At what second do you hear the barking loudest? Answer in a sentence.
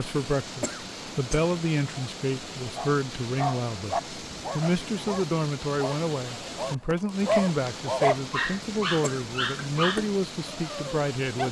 The volume of the barking peaks at 8 seconds.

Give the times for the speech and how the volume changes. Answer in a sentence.
The speech can be heard from 0.0 to 11.4 s, at a steady volume.